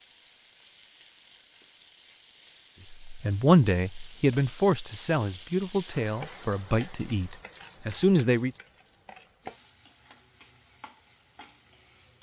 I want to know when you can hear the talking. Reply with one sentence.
The talking can be heard from 3.0 to 8.5 s.